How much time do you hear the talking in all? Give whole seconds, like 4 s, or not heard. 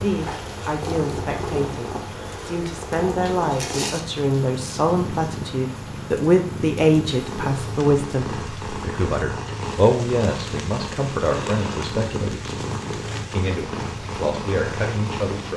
15 s.